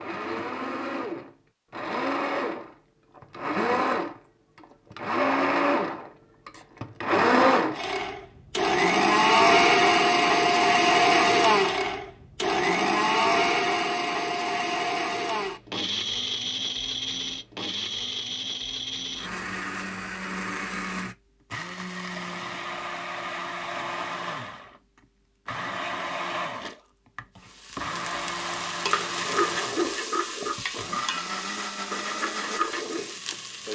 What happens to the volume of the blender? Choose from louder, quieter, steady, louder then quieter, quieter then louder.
louder then quieter.